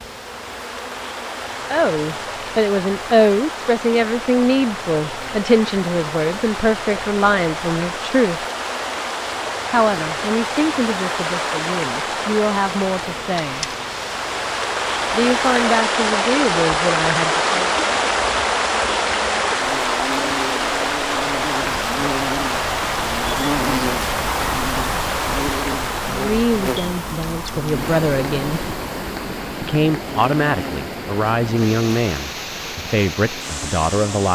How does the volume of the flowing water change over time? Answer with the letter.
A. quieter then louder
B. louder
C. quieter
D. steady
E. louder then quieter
E.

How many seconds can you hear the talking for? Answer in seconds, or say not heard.
21 s.